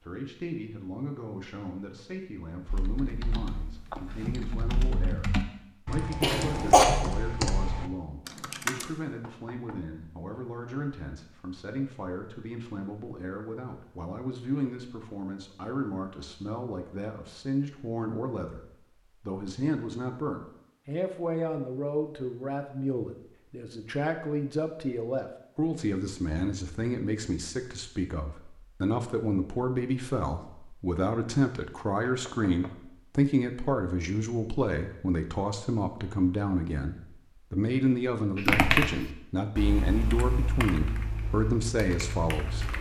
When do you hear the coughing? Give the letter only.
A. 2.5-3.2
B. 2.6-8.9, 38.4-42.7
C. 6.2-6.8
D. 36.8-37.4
C.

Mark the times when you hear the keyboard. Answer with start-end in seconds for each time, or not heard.
2.6-8.9, 38.4-42.7.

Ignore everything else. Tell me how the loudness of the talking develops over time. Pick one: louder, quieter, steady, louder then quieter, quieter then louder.
louder.